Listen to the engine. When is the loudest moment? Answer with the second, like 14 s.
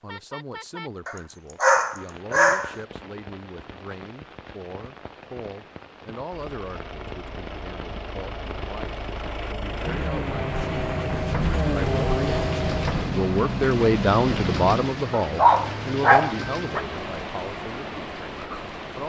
12 s.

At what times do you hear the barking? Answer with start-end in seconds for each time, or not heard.
1.1-2.8, 15.1-16.8.